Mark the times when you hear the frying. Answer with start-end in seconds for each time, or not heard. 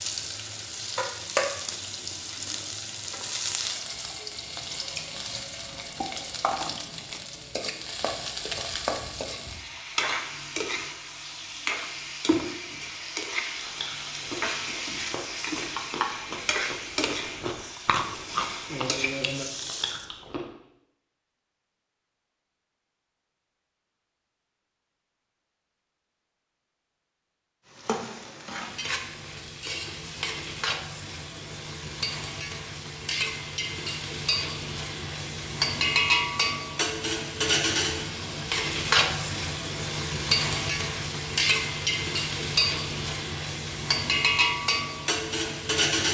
0.0-20.1, 27.7-46.0.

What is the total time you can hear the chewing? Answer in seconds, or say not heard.
7 s.